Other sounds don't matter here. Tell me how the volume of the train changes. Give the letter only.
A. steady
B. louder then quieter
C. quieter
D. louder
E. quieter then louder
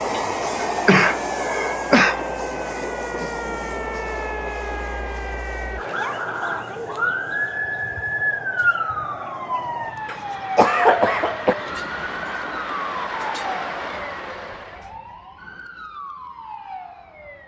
E.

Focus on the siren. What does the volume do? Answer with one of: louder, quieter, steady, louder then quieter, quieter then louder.
louder then quieter.